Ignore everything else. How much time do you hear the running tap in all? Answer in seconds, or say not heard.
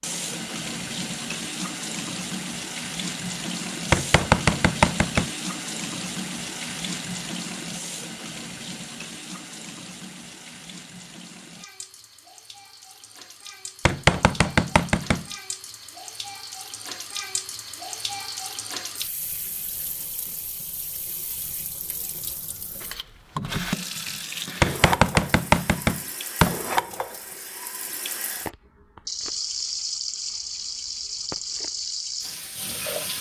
33 s.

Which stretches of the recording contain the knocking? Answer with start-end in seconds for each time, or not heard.
3.9-5.3, 13.8-15.2, 24.6-26.6.